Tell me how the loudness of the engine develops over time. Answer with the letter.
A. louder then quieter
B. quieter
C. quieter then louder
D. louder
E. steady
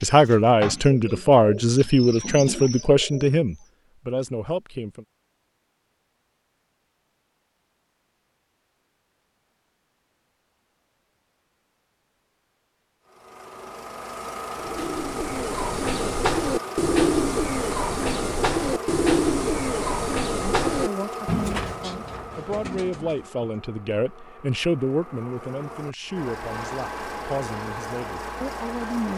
C.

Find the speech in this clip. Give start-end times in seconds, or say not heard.
0.0-5.0, 20.2-29.1.